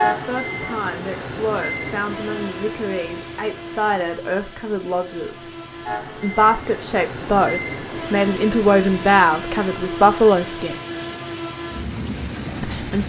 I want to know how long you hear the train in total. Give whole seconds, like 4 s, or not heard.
13 s.